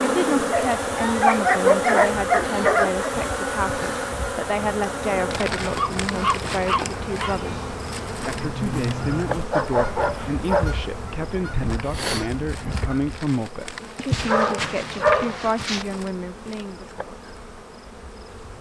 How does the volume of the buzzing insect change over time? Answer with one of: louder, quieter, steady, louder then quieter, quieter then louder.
quieter.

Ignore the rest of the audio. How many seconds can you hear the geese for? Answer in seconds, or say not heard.
11 s.